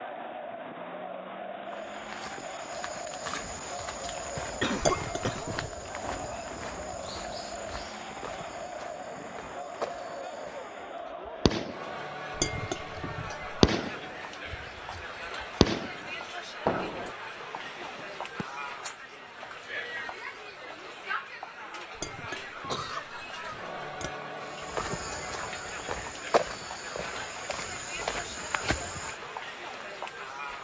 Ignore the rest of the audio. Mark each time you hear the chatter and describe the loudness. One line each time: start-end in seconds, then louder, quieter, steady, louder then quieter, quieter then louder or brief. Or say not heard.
0.0-30.5 steady.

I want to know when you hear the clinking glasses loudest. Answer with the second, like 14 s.
13 s.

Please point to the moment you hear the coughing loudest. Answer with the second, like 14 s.
5 s.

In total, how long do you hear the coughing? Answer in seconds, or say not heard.
2 s.